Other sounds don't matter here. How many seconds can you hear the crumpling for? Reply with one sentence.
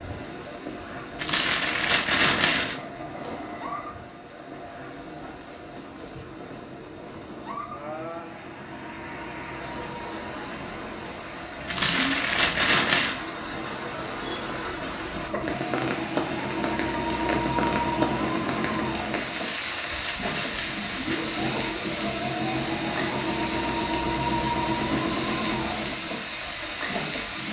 You can hear the crumpling for 5 seconds altogether.